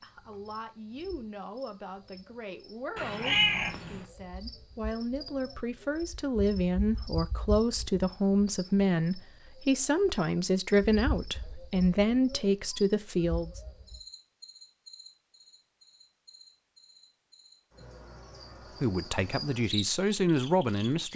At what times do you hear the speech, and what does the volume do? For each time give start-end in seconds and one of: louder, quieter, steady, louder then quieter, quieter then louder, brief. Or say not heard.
0.0-13.6 louder
18.8-21.1 brief.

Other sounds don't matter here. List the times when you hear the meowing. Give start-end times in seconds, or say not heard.
3.0-4.0.